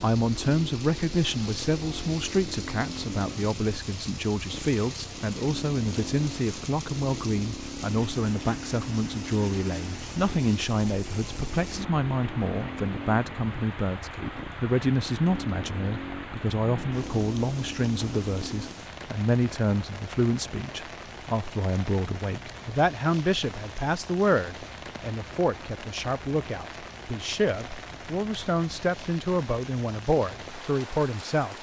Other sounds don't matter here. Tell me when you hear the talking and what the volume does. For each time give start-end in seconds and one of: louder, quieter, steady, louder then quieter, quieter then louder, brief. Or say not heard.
0.0-31.5 steady.